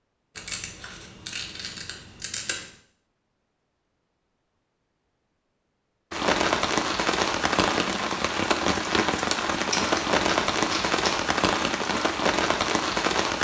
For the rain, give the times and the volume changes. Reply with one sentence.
The rain can be heard from 6.1 to 13.4 s, at a steady volume.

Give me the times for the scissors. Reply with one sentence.
The scissors can be heard from 0.3 to 2.6 s and from 9.7 to 11.2 s.